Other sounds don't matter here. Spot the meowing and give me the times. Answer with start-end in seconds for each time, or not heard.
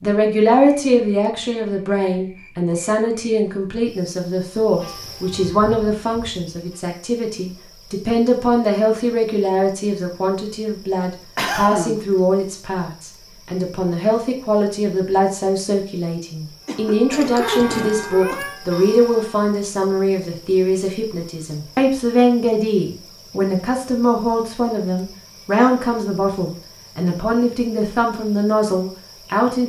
17.1-18.6.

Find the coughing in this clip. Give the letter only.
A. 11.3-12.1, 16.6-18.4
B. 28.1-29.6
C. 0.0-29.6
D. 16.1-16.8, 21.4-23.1
A.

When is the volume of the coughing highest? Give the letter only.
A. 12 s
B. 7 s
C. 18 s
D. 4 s
A.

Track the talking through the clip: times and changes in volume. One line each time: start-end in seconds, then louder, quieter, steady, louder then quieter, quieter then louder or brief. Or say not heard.
0.0-29.6 steady.